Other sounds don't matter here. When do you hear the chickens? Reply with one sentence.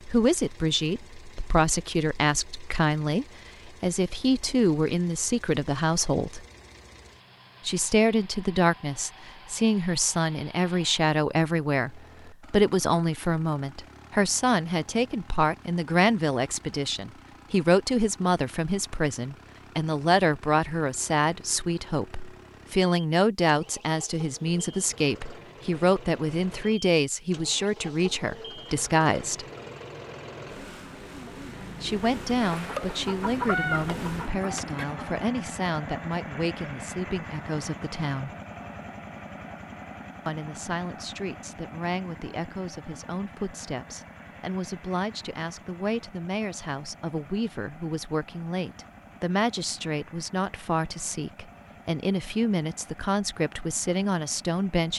The chickens can be heard from 32.4 to 35.0 s.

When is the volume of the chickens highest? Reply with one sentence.
The loudest moment of the chickens is at 34 seconds.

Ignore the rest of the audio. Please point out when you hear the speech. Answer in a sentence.
You can hear the speech from 0.1 to 6.5 s, from 7.7 to 29.4 s, from 31.8 to 38.3 s and from 40.2 to 54.9 s.